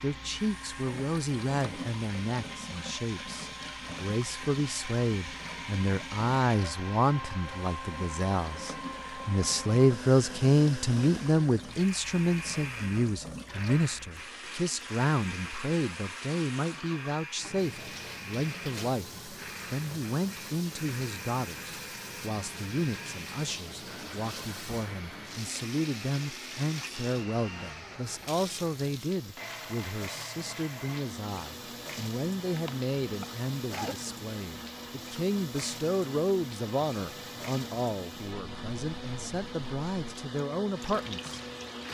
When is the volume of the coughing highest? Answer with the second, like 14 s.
34 s.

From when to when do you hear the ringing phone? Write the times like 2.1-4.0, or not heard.
not heard.